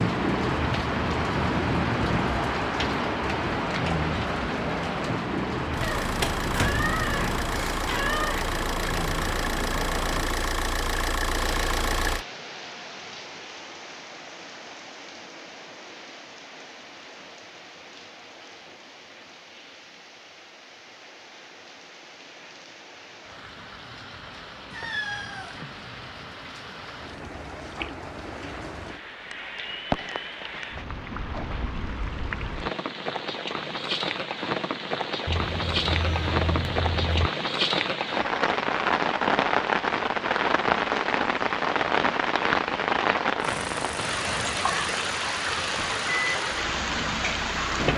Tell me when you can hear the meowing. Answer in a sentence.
The meowing can be heard from 5.8 to 8.4 s, from 24.7 to 25.6 s and from 35.2 to 37.3 s.